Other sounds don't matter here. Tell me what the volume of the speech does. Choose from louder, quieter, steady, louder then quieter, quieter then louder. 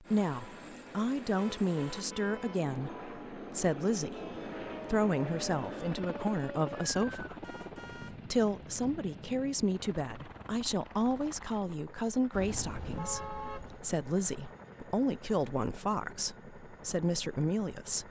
steady.